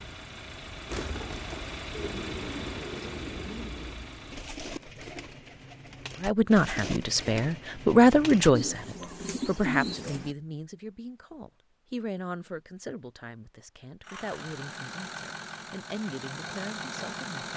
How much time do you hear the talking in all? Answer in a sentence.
The talking can be heard for 11 seconds in total.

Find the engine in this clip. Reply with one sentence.
You can hear the engine from 0.0 to 4.7 s and from 14.0 to 17.5 s.